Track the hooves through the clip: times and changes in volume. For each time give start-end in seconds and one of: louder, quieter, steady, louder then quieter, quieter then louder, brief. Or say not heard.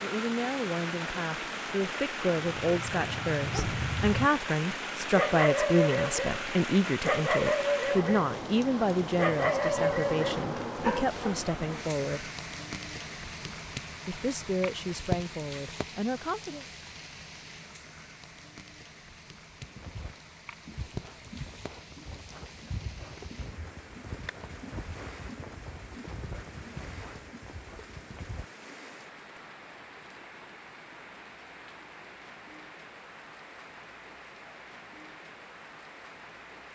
19.6-28.4 steady.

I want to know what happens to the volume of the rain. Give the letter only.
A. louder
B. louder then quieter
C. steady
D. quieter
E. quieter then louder
D.